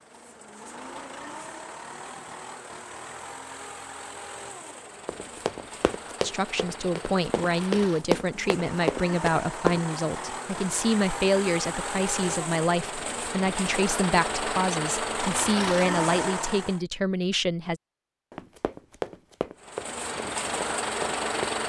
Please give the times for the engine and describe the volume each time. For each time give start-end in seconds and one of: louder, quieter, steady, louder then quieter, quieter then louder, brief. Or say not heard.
0.0-16.8 louder
19.6-21.6 brief.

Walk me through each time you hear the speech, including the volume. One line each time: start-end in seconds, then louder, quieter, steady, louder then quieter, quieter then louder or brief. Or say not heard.
6.2-17.8 steady.